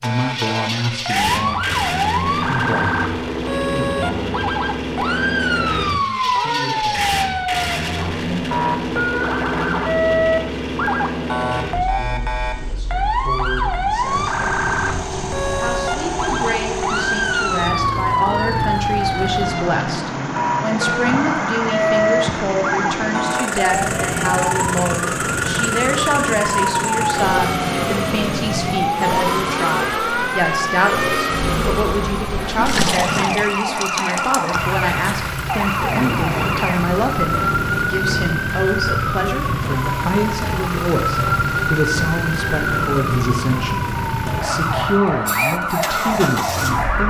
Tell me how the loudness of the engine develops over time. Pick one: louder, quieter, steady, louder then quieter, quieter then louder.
steady.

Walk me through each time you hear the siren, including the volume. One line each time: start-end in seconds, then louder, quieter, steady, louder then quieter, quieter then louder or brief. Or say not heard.
0.0-47.0 steady.